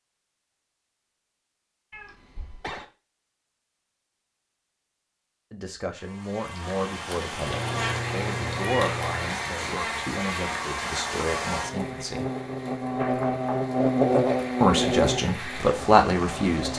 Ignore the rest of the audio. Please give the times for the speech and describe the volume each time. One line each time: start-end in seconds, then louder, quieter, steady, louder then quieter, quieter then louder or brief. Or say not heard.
5.5-12.3 steady
14.6-16.7 brief.